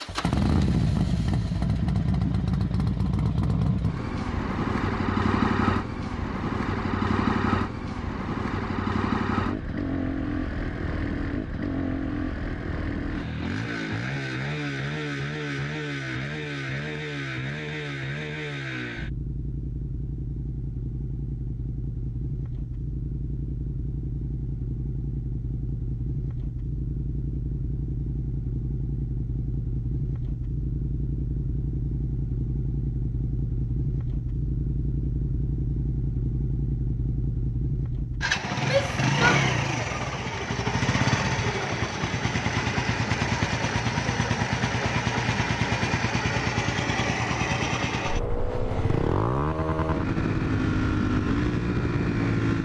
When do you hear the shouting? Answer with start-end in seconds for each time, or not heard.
38.6-40.0.